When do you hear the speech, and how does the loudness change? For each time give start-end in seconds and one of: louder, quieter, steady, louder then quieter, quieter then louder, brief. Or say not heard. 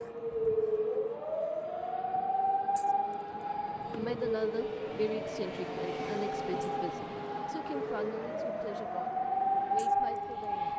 3.4-10.7 quieter.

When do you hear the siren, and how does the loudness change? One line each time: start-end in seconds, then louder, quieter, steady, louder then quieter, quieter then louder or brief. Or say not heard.
0.0-10.7 quieter then louder.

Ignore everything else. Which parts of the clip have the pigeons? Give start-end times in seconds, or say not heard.
not heard.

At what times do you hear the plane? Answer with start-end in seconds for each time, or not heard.
0.0-10.7.